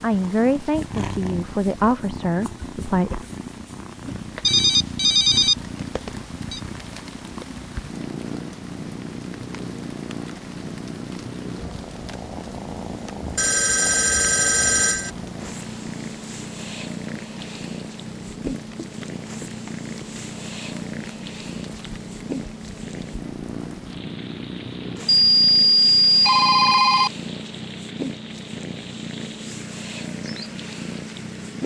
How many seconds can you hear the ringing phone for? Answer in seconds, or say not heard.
6 s.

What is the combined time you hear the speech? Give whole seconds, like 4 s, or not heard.
3 s.